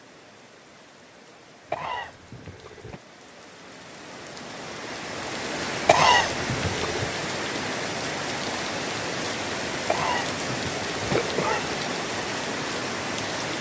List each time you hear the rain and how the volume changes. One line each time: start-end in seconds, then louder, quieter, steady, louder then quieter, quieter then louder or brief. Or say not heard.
0.0-13.5 louder.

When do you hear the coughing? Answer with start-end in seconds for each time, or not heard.
1.7-3.0, 5.8-7.1, 9.8-11.8.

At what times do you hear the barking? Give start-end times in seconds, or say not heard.
not heard.